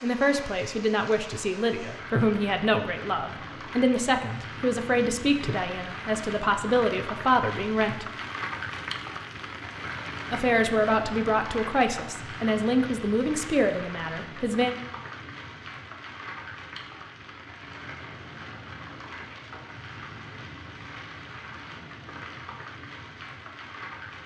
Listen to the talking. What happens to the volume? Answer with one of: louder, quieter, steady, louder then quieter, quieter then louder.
steady.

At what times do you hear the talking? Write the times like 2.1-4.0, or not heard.
0.0-8.1, 10.3-14.8.